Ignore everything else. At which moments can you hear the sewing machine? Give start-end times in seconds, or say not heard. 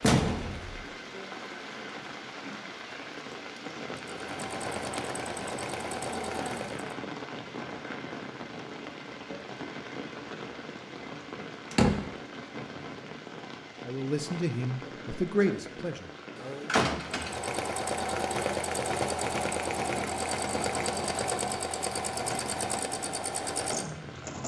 4.0-7.0, 17.1-24.4.